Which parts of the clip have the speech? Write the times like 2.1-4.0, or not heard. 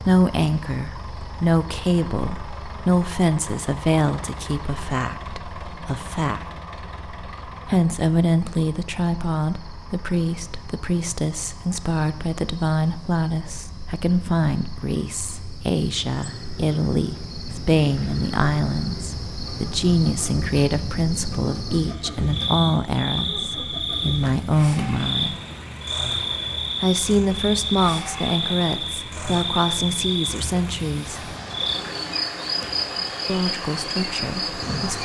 0.0-6.5, 7.7-25.4, 26.8-31.4, 33.2-35.0.